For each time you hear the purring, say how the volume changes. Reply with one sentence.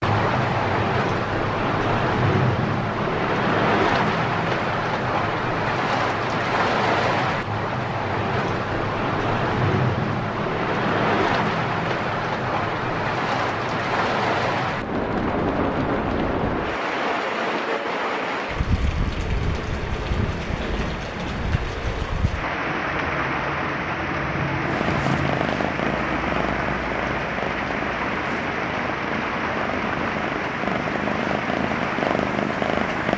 You can hear the purring from 24.6 to 33.1 s, getting quieter then louder.